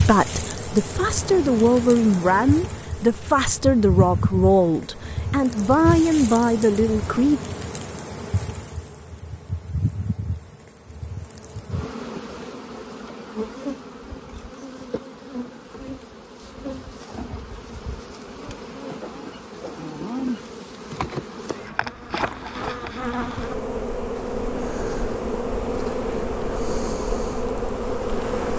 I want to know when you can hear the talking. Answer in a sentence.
The talking can be heard from 0.0 to 7.4 s.